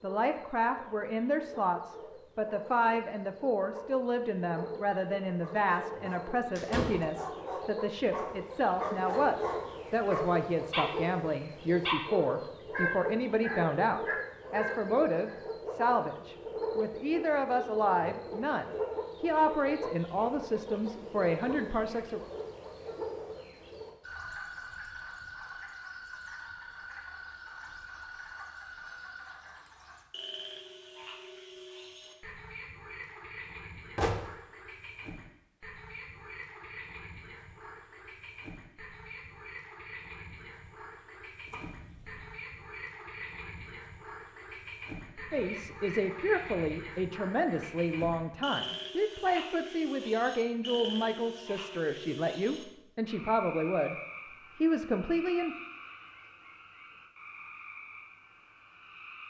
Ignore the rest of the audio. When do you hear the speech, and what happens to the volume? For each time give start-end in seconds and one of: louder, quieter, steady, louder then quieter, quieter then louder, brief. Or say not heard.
0.0-22.2 steady
45.3-54.0 steady
54.6-55.5 brief.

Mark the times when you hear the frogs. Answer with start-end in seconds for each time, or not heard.
0.0-59.2.